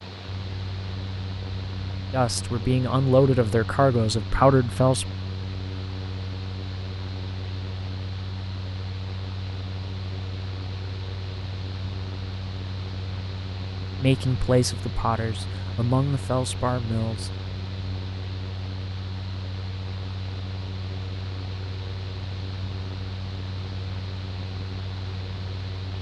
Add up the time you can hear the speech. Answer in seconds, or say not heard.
6 s.